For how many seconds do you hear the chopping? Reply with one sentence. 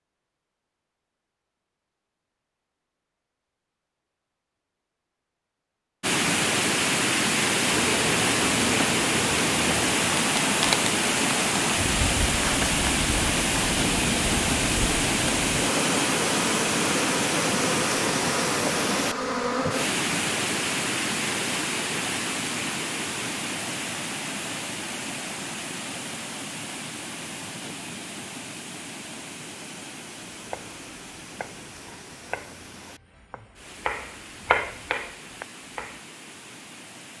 The chopping can be heard for 6 seconds in total.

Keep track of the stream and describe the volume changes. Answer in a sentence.
The volume of the stream goes down.